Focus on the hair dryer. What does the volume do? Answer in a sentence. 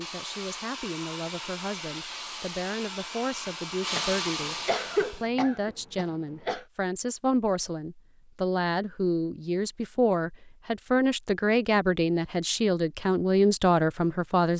The volume of the hair dryer goes up.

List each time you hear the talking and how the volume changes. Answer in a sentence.
The talking can be heard from 0.0 to 14.5 s, getting louder.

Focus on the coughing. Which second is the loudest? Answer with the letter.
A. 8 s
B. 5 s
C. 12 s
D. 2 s
B.